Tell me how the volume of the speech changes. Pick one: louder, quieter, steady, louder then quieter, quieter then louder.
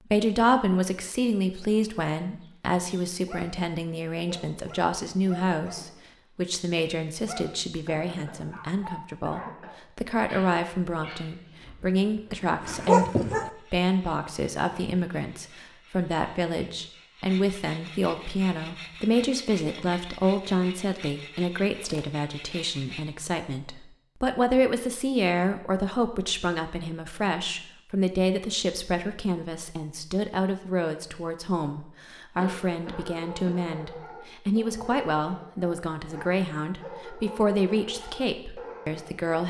steady.